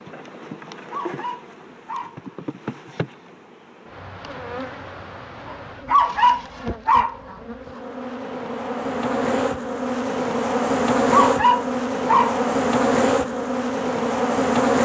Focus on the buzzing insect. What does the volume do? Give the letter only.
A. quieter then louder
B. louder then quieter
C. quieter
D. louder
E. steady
D.